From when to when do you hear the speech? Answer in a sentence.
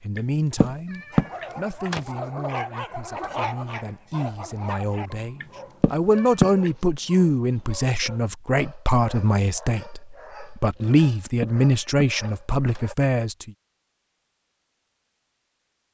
You can hear the speech from 0.0 to 13.5 s.